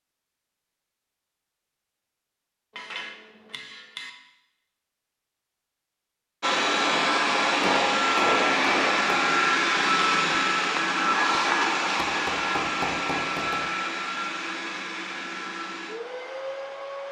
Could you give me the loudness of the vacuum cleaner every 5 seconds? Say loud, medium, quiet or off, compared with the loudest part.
off, loud, loud, quiet.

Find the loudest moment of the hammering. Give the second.
8 s.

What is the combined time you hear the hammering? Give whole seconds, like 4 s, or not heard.
5 s.